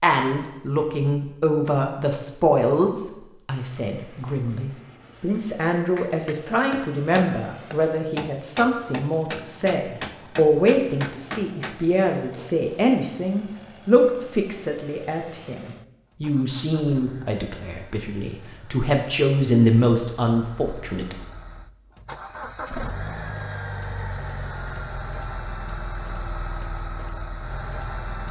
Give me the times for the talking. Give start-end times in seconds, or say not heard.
0.0-21.1.